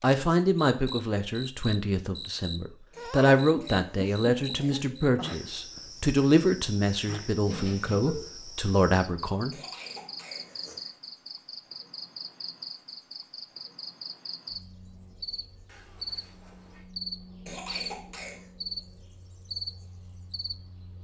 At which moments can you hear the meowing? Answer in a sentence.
The meowing can be heard from 7.5 to 8.3 s and from 15.7 to 16.9 s.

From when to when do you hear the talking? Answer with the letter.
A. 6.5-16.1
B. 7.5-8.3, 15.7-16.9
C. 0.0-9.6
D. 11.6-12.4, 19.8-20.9
C.